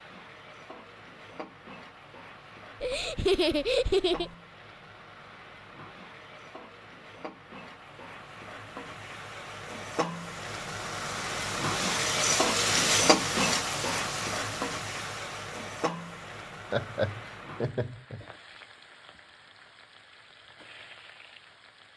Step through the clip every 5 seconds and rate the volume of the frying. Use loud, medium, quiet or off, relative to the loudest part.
quiet, quiet, loud, quiet, quiet.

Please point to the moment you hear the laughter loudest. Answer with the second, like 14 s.
3 s.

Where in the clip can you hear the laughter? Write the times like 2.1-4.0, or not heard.
2.8-4.3, 16.7-18.2.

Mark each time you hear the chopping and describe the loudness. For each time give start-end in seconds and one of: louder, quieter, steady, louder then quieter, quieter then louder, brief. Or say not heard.
not heard.